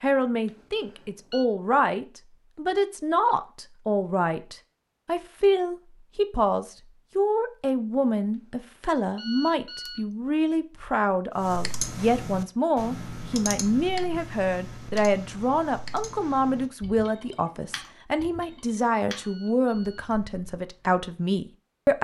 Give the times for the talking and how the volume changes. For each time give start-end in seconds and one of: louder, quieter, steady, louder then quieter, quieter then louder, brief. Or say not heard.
0.0-21.9 steady.